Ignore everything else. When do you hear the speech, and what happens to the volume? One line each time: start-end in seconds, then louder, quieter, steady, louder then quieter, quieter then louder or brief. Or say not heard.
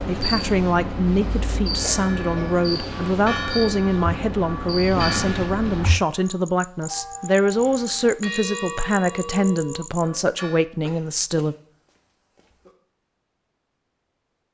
0.1-11.6 steady.